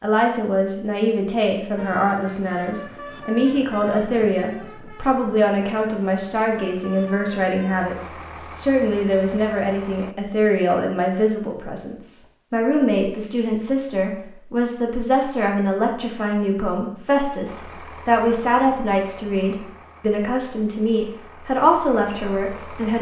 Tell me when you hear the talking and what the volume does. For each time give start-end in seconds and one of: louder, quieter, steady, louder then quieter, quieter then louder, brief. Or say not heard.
0.0-22.9 steady.